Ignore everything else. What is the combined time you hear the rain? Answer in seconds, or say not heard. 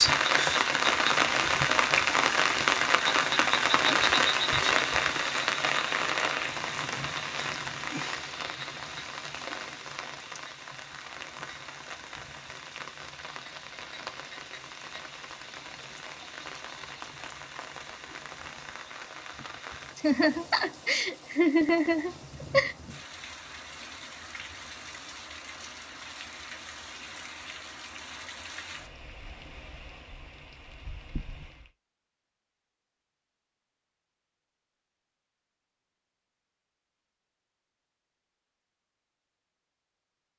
32 s.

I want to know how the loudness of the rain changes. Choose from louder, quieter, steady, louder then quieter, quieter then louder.
quieter.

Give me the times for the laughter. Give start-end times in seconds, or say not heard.
19.9-22.8.